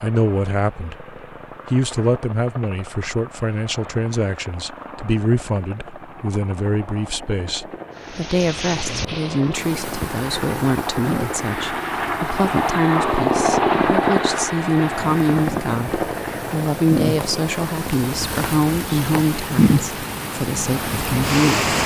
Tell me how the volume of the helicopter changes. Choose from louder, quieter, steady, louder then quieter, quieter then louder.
louder then quieter.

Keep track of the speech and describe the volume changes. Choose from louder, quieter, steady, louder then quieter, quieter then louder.
steady.